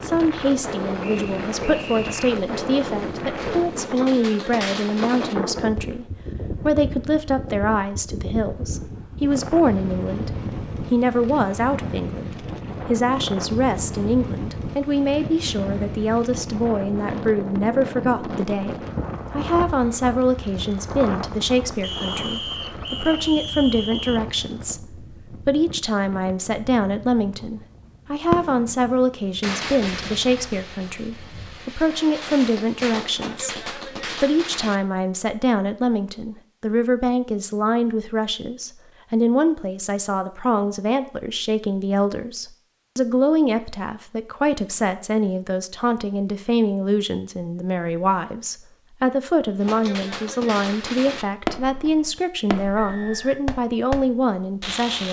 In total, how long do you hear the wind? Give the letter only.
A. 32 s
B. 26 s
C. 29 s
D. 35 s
A.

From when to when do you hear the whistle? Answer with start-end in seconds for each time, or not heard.
1.0-2.2, 21.8-24.2, 52.8-53.4.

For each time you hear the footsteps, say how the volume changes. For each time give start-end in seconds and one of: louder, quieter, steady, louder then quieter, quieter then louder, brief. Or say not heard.
not heard.